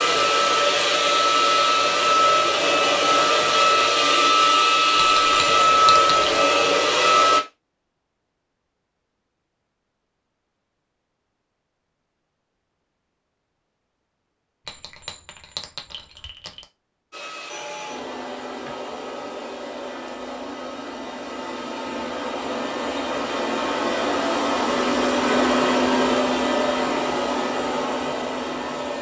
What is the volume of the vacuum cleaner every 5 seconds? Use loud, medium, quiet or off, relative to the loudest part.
loud, loud, off, quiet, medium, medium.